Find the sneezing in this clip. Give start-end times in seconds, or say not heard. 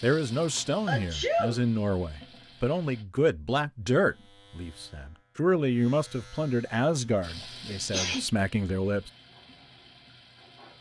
0.8-1.6, 7.7-8.2.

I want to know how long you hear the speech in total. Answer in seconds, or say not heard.
9 s.